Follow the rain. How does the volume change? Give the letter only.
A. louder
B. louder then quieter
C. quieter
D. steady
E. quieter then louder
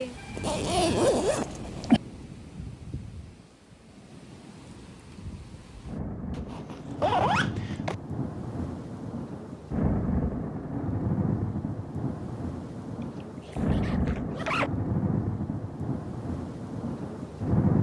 A.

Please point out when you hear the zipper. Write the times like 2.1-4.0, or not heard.
0.3-2.0, 6.3-8.0, 13.4-14.7.